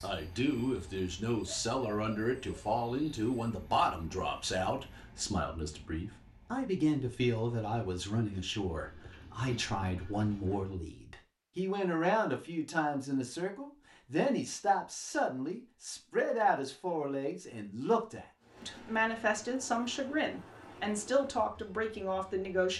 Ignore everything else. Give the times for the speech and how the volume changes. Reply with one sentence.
You can hear the speech from 0.0 to 22.7 s, at a steady volume.